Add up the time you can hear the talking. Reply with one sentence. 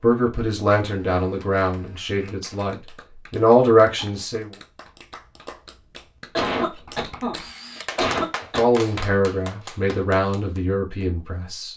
The talking can be heard for 8 seconds in total.